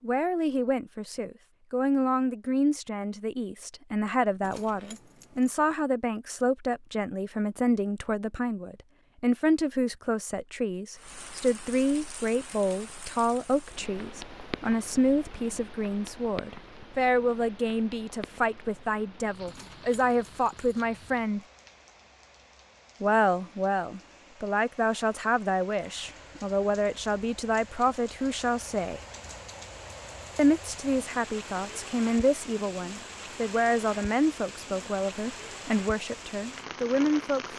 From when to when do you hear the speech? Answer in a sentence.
The speech can be heard from 0.0 to 21.4 s, from 23.0 to 29.0 s and from 30.4 to 37.5 s.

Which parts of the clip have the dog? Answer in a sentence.
You can't hear the dog here.